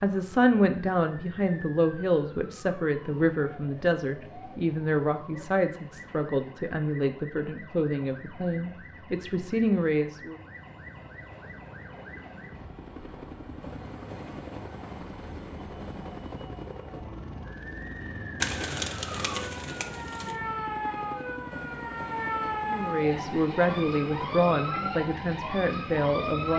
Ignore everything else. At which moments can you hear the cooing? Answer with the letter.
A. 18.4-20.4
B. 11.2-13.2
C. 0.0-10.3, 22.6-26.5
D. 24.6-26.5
A.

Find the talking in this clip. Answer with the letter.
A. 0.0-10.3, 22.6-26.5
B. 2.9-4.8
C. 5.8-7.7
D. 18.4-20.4
A.